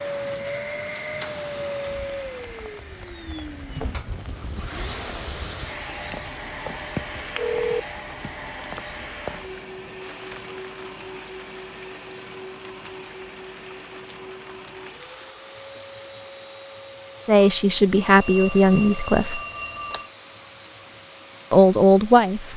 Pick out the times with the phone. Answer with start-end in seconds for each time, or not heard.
7.3-7.8, 17.4-20.1.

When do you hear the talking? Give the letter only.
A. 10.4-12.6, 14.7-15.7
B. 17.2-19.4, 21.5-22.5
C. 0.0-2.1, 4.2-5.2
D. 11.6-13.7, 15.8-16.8
B.